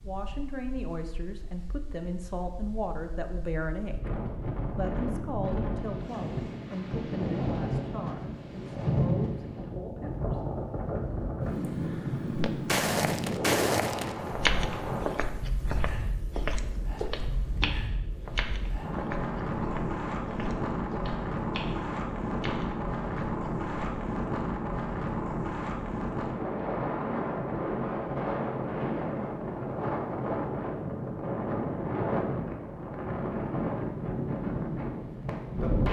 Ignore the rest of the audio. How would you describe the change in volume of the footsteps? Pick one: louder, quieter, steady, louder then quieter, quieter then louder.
quieter.